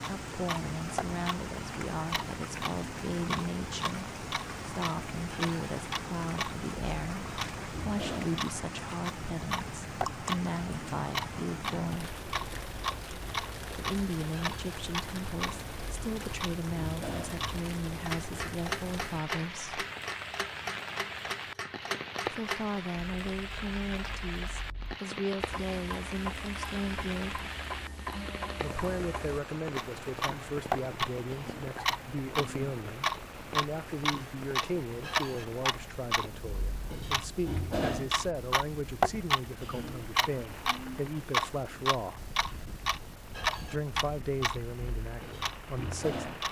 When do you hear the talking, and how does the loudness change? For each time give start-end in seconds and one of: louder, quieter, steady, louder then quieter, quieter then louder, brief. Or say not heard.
0.1-12.1 steady
13.7-19.9 steady
22.2-27.4 steady
28.6-42.2 steady
43.6-46.2 brief.